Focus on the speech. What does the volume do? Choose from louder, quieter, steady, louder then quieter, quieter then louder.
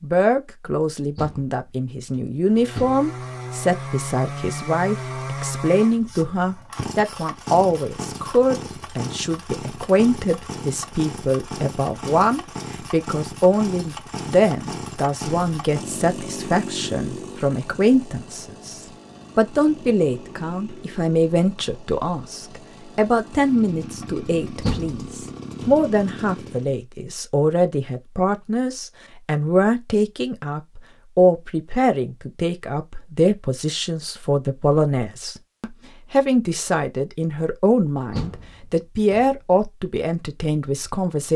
steady.